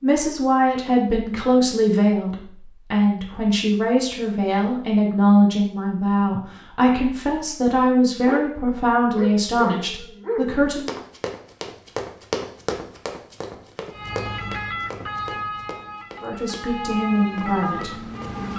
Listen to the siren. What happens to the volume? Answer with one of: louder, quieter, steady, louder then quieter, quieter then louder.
quieter then louder.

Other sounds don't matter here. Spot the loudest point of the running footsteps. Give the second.
12 s.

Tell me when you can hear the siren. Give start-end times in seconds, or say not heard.
13.9-18.5.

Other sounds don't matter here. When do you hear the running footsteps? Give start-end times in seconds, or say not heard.
10.8-18.4.